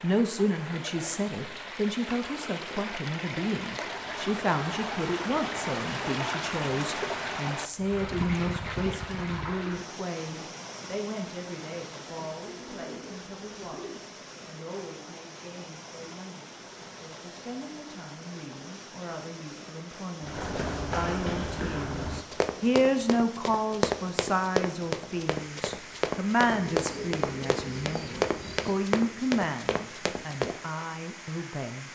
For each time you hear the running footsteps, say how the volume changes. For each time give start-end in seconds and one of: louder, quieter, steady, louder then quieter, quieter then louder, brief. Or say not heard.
20.2-30.6 steady.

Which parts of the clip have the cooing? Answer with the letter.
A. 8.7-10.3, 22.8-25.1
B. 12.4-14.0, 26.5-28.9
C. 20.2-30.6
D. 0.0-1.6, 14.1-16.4
B.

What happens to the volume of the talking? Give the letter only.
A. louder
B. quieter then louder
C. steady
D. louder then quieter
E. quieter
B.